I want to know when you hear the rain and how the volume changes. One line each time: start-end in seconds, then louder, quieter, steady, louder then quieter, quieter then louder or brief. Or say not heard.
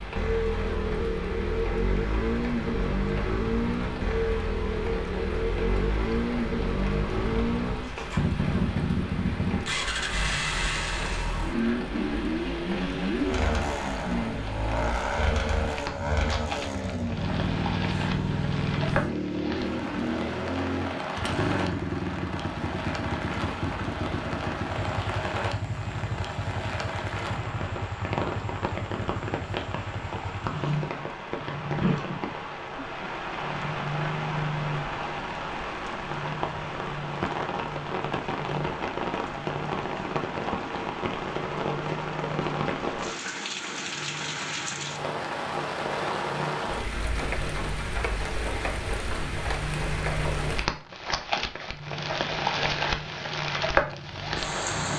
0.0-54.9 louder.